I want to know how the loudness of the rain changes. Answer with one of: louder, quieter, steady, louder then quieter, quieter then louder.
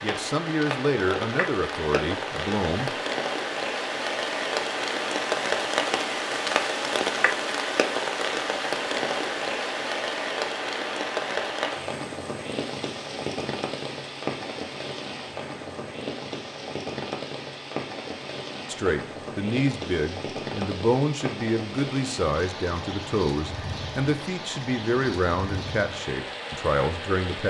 quieter.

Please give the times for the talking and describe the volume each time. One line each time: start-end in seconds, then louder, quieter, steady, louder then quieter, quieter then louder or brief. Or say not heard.
0.0-2.9 brief
18.6-27.4 steady.